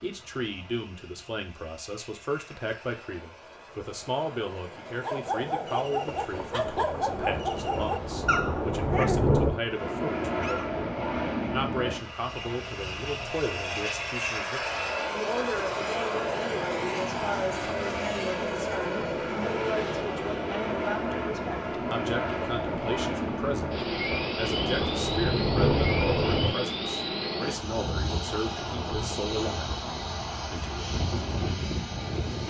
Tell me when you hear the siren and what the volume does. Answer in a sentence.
You can't hear the siren here.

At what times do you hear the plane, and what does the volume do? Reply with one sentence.
You can hear the plane from 0.0 to 32.4 s, getting louder.